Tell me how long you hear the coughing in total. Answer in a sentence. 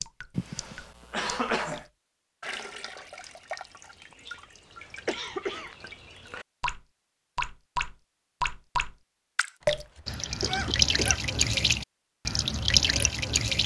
You can hear the coughing for 4 seconds altogether.